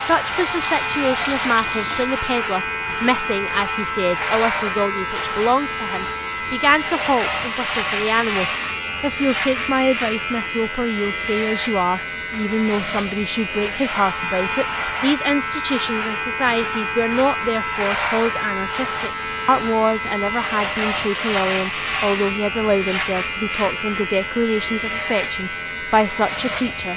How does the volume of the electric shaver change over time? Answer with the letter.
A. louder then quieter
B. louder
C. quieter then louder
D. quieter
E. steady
E.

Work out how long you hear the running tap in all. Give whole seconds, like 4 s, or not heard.
2 s.